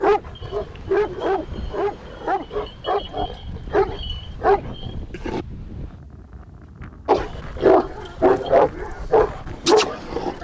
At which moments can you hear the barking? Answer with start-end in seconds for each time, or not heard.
0.0-5.5, 7.0-10.3.